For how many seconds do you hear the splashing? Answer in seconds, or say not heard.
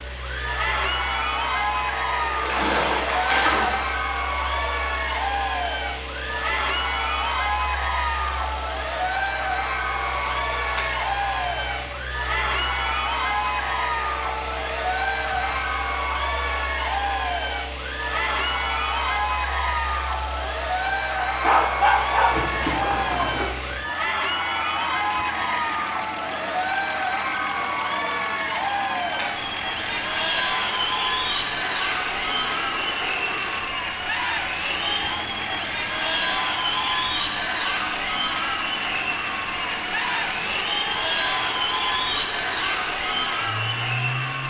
4 s.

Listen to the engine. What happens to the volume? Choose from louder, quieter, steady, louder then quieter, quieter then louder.
steady.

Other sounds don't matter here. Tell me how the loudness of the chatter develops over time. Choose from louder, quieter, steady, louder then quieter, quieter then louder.
steady.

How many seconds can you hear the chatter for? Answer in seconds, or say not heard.
44 s.